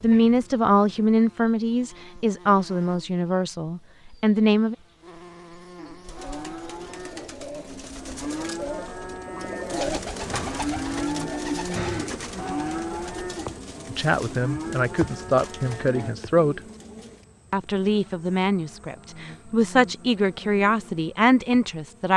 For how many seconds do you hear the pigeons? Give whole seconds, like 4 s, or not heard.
11 s.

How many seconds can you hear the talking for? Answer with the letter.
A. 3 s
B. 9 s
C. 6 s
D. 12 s
D.